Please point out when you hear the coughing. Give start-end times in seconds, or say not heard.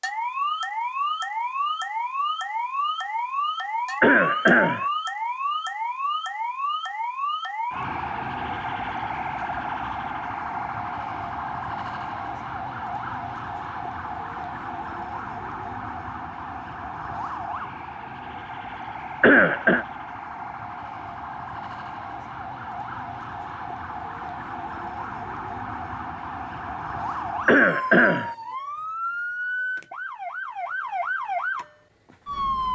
4.0-4.8, 19.2-19.9, 27.4-28.3.